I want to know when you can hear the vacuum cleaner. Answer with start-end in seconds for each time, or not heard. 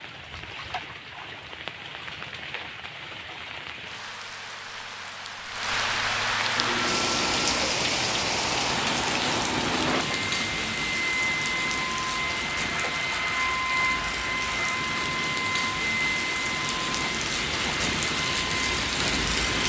6.5-19.4.